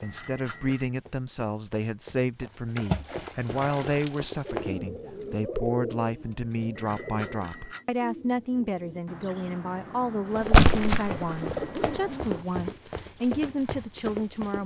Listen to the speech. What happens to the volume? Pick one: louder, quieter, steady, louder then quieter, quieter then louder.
steady.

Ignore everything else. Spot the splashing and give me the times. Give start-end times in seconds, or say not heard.
2.8-4.7, 10.5-11.2.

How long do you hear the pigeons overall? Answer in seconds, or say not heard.
8 s.